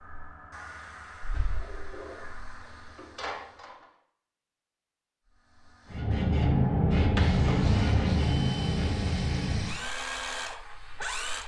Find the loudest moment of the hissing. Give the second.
7 s.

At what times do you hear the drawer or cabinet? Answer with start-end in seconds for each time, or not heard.
1.3-3.9, 7.0-8.2.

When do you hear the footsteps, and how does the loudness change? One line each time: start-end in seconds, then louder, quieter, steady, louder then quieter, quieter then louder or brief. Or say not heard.
not heard.